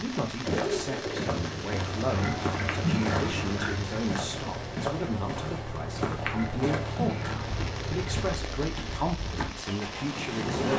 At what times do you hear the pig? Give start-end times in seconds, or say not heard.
2.0-3.7, 6.2-7.6.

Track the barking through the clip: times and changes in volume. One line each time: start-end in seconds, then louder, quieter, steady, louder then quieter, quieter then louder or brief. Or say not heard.
not heard.